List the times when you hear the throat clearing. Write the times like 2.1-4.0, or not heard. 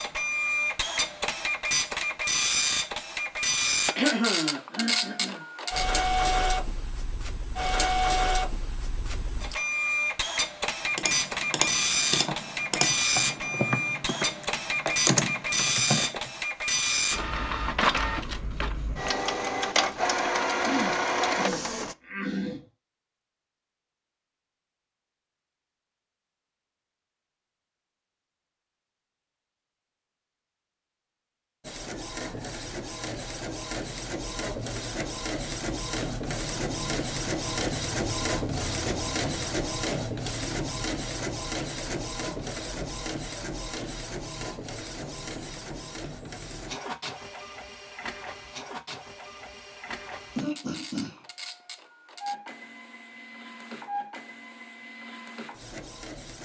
4.0-5.4, 20.6-22.6, 50.4-51.2.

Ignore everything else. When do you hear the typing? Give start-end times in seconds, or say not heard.
10.9-16.3.